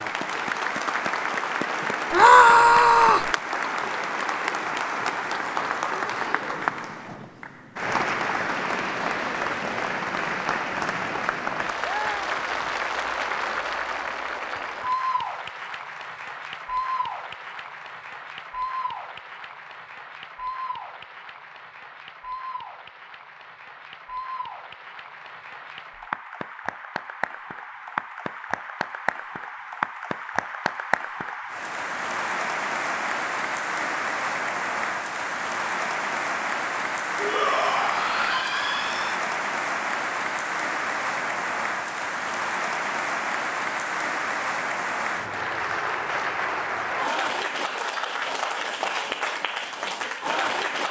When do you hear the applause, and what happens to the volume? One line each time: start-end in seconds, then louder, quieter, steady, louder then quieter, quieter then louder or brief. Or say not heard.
0.0-50.8 quieter then louder.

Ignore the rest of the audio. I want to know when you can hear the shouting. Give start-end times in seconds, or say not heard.
2.1-3.3, 37.2-39.1.